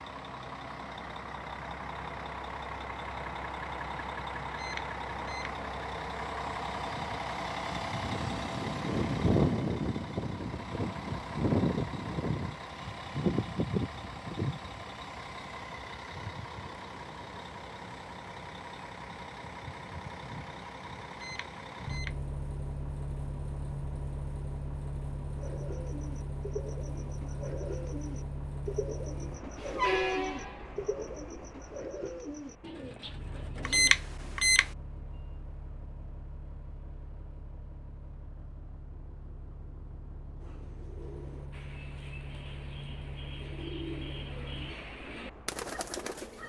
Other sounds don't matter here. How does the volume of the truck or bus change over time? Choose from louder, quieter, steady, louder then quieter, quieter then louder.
quieter.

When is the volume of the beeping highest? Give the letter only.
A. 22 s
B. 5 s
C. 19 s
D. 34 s
D.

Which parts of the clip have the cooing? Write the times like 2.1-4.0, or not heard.
25.4-34.0, 40.4-46.4.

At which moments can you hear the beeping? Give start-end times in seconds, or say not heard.
4.5-5.5, 21.1-22.1, 33.6-34.7.